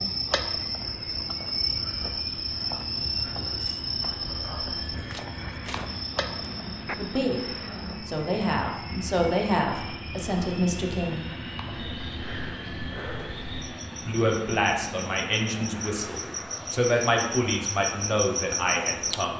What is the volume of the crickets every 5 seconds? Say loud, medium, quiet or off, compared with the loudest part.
loud, medium, medium, loud.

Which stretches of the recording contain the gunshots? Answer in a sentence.
The gunshots can be heard from 5.0 to 7.0 s.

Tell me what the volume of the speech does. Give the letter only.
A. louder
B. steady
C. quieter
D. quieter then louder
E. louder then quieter
B.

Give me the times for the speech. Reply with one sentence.
The speech can be heard from 7.0 to 11.3 s and from 14.1 to 19.3 s.